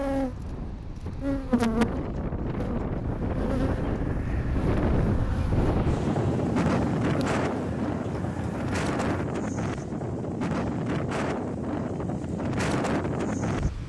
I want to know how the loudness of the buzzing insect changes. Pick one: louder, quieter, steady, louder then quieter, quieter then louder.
quieter.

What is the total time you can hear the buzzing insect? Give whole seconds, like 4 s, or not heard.
9 s.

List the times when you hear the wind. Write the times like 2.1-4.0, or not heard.
0.0-13.8.